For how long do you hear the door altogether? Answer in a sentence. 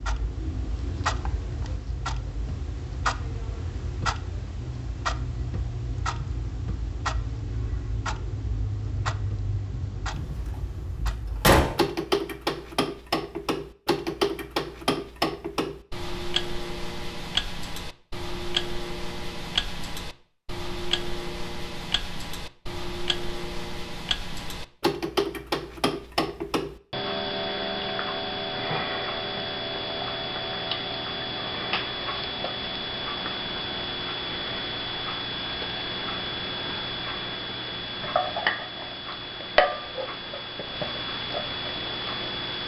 You can hear the door for 2 seconds altogether.